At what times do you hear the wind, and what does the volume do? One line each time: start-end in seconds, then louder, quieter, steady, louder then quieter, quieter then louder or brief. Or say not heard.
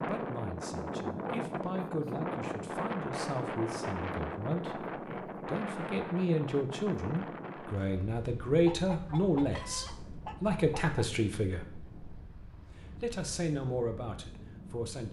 0.0-15.0 quieter.